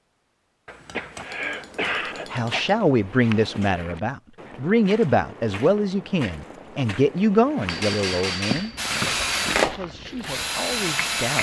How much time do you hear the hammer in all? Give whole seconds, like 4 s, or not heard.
4 s.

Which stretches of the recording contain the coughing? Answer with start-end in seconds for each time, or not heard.
0.7-2.7, 8.5-9.3.